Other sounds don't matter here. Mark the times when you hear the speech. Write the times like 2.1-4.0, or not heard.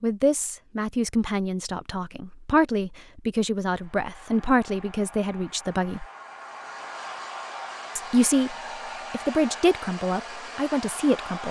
0.0-6.0, 8.0-11.4.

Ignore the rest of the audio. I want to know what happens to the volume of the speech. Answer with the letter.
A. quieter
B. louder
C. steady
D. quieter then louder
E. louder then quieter
C.